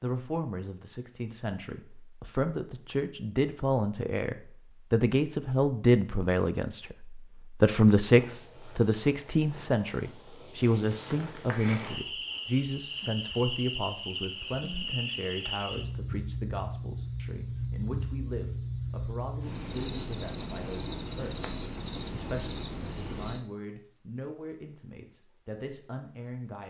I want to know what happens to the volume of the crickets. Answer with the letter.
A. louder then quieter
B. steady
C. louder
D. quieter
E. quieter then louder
C.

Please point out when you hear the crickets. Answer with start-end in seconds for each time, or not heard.
8.0-26.5.